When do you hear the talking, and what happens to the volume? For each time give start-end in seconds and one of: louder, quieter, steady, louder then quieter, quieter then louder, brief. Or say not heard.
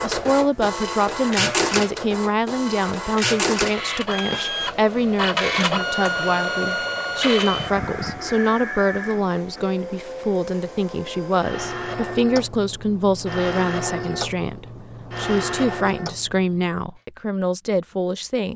0.0-18.5 steady.